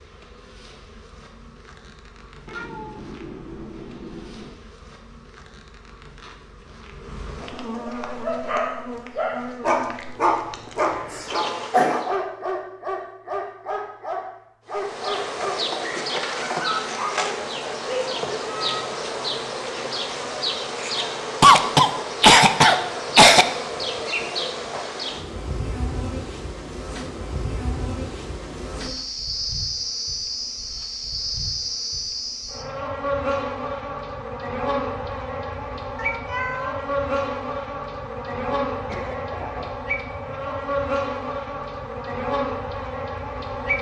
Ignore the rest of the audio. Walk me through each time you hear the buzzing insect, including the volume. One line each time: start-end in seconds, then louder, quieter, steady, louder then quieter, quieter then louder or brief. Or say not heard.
0.0-12.1 louder
14.7-43.7 steady.